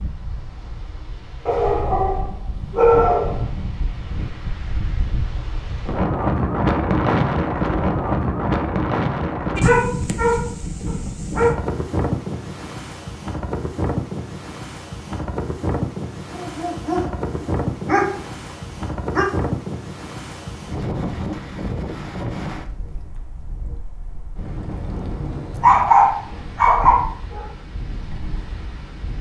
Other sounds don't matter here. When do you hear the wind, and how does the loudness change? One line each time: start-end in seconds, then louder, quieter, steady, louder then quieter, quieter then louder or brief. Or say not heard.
0.0-29.1 louder then quieter.